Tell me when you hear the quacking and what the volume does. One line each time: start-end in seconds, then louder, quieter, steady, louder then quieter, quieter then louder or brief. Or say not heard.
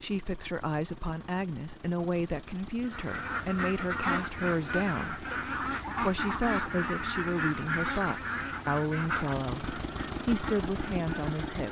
2.8-11.6 quieter.